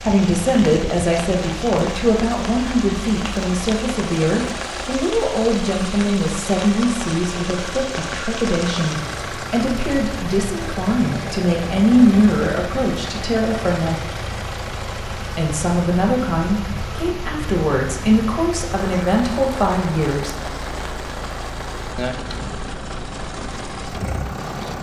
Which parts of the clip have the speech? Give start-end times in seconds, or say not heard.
0.0-14.0, 15.3-20.4.